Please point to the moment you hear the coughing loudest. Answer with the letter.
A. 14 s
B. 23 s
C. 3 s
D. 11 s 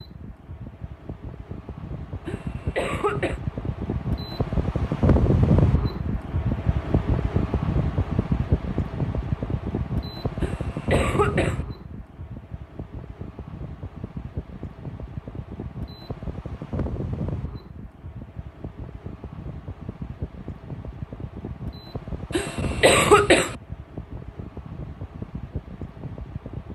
B.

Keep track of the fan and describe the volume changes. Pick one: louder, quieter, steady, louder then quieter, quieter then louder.
quieter.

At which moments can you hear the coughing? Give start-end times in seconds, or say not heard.
2.2-3.4, 10.4-11.7, 22.3-23.6.